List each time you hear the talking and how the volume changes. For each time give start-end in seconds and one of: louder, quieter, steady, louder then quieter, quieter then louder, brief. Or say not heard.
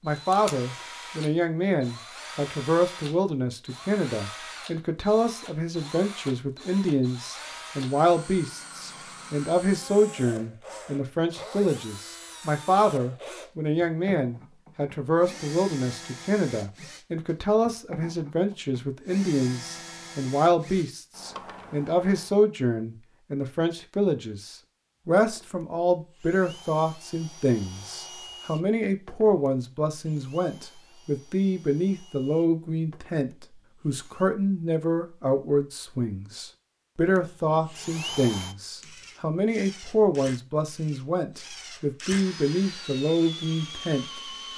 0.0-44.5 steady.